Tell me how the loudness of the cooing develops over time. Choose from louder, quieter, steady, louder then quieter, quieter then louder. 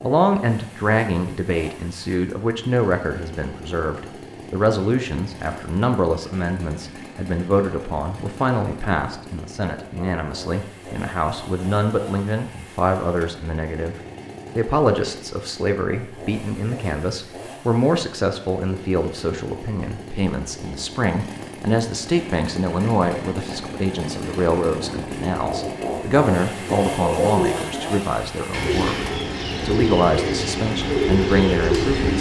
louder.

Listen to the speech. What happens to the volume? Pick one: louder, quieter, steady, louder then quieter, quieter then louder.
steady.